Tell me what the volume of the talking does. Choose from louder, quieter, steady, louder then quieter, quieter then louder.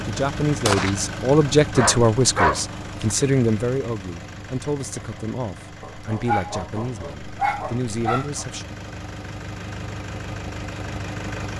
quieter.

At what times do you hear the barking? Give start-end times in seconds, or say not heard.
1.8-3.1, 5.8-8.4.